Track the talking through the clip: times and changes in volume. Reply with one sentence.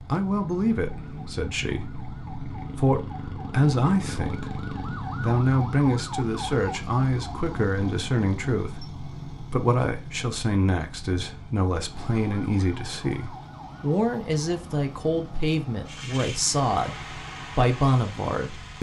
The talking can be heard from 0.1 to 18.7 s, at a steady volume.